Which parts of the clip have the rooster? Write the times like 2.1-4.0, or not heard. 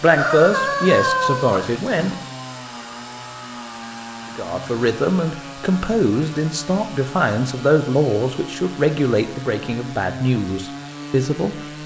0.1-2.1.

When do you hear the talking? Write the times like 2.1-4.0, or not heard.
0.0-2.1, 4.3-11.6.